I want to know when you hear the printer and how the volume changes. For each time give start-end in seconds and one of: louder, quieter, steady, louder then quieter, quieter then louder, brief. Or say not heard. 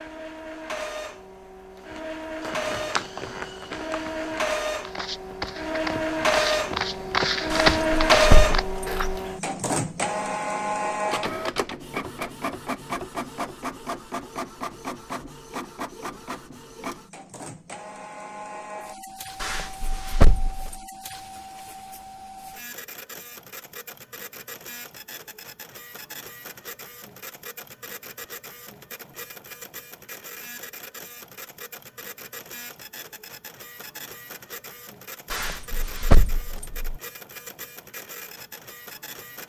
0.0-39.4 quieter.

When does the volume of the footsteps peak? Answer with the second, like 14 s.
8 s.